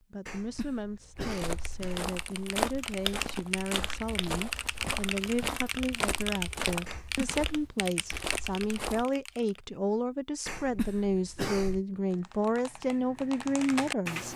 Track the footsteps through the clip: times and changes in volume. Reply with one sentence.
The footsteps can be heard from 1.1 to 9.1 s, getting quieter.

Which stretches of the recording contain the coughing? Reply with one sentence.
You can hear the coughing from 0.2 to 2.0 s, from 6.8 to 7.5 s and from 10.4 to 11.8 s.